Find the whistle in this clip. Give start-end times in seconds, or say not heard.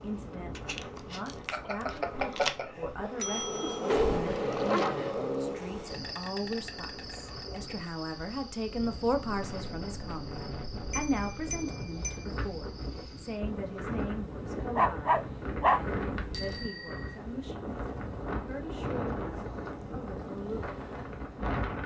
not heard.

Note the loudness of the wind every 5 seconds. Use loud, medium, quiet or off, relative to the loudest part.
medium, medium, loud, loud, loud.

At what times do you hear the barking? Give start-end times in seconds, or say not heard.
3.9-5.6, 14.8-16.7.